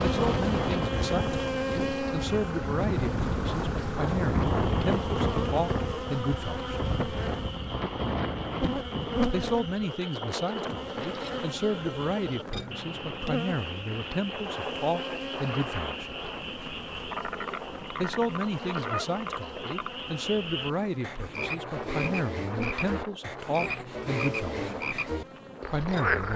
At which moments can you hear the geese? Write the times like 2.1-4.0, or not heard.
not heard.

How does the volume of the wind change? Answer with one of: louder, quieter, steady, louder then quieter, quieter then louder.
quieter.